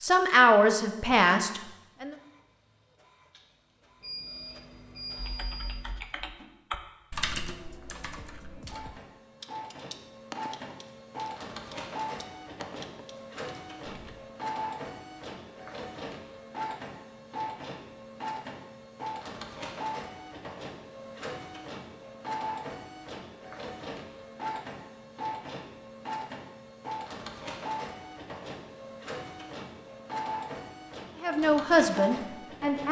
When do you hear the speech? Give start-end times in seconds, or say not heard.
0.0-2.1, 31.2-32.8.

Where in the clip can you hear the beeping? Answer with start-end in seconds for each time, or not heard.
4.0-5.8.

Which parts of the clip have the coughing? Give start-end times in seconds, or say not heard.
not heard.